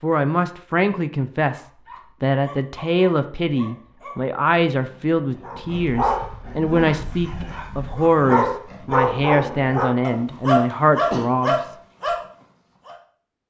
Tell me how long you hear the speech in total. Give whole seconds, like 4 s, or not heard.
12 s.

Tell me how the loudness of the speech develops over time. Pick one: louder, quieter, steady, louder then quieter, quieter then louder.
steady.